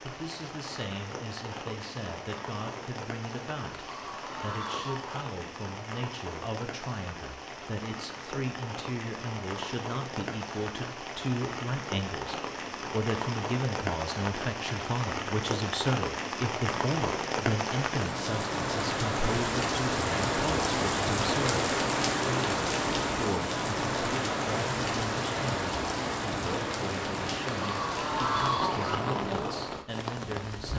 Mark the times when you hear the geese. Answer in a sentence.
You can hear the geese from 3.7 to 5.2 s and from 27.4 to 28.9 s.